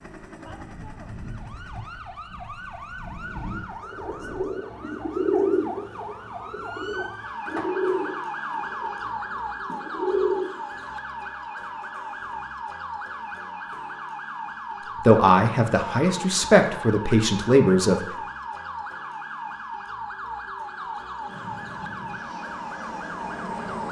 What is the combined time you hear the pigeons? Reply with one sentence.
You can hear the pigeons for 7 seconds altogether.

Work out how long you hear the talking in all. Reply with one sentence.
You can hear the talking for 3 seconds altogether.